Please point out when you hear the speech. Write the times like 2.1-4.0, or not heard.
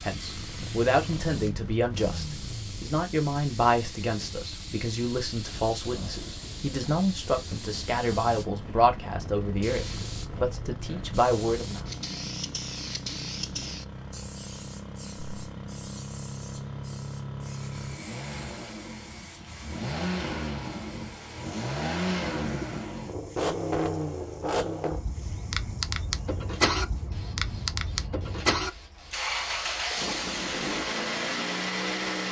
0.0-11.8.